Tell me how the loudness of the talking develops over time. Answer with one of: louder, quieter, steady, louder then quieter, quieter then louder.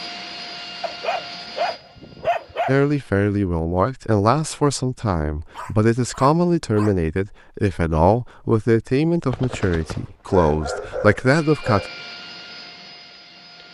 steady.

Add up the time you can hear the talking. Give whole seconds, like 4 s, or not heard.
9 s.